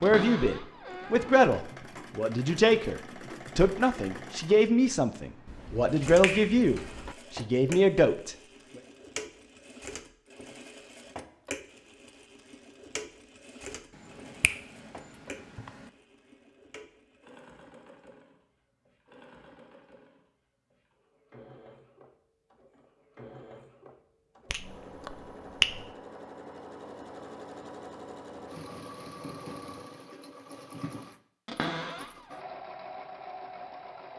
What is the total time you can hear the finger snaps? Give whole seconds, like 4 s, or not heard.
5 s.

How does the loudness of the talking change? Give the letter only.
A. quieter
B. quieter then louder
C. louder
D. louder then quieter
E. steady
E.